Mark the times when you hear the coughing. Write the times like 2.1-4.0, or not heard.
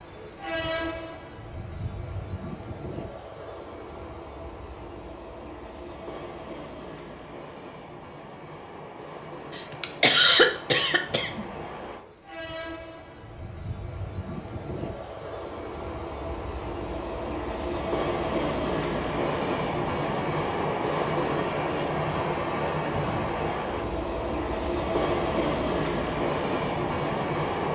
9.6-11.4.